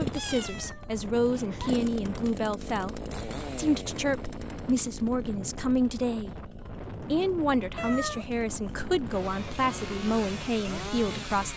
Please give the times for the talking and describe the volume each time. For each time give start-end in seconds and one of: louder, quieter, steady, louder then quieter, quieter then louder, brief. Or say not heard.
0.0-11.5 steady.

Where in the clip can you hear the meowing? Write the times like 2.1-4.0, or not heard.
0.1-1.8, 7.8-8.8.